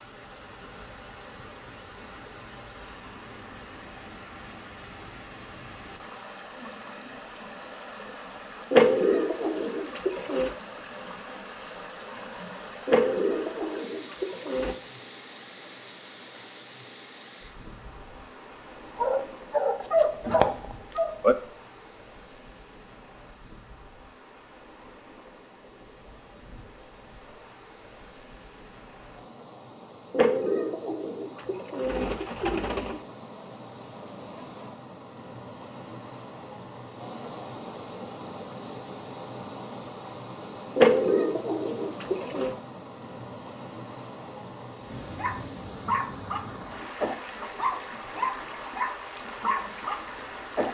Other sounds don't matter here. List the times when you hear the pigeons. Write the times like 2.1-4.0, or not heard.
8.7-10.6, 12.8-14.8, 30.1-33.0, 40.8-42.5.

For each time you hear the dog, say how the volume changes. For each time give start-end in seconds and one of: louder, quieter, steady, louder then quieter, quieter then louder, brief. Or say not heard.
18.9-21.4 brief
45.1-50.6 steady.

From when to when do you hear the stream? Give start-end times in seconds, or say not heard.
0.0-50.6.